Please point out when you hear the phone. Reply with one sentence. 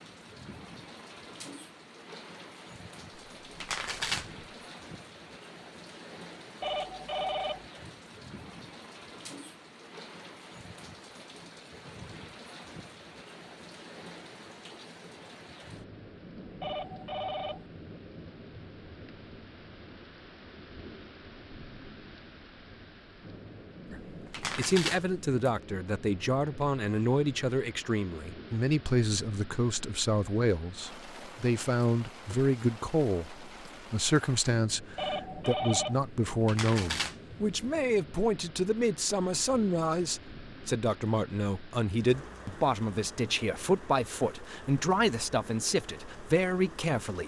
The phone can be heard from 6.6 to 7.7 s, from 16.6 to 17.6 s and from 35.0 to 36.0 s.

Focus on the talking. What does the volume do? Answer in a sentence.
The volume of the talking stays about the same.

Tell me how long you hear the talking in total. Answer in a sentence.
You can hear the talking for 23 seconds altogether.